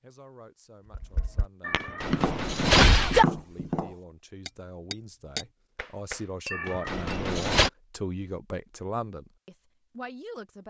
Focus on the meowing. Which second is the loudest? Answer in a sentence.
The volume of the meowing peaks at 3 seconds.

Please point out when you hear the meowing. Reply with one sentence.
You can hear the meowing from 1.6 to 3.2 s and from 6.5 to 7.7 s.